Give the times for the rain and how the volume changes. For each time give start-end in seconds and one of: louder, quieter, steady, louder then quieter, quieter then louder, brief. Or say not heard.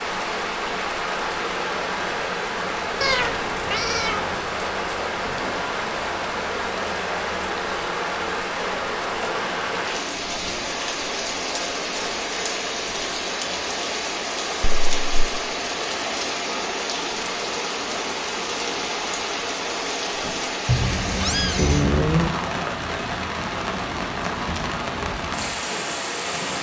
0.0-26.5 steady.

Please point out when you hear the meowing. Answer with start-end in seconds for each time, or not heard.
3.0-4.3, 14.6-15.0, 20.6-22.4.